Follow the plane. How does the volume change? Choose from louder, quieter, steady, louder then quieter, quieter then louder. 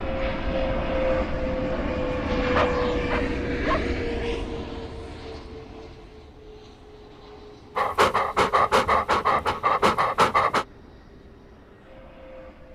quieter.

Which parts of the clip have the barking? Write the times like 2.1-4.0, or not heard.
2.5-3.8, 7.8-10.7.